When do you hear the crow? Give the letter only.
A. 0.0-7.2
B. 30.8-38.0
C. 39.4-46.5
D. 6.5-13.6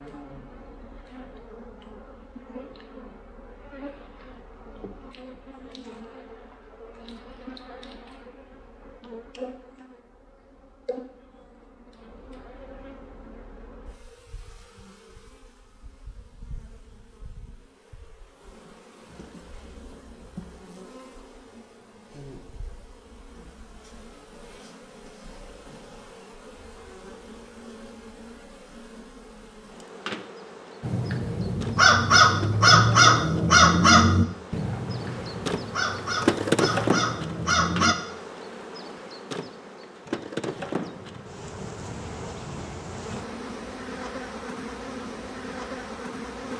B.